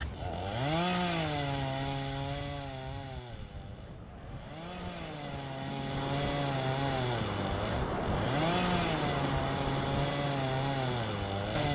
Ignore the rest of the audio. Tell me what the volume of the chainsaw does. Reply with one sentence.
The loudness of the chainsaw goes down, then up.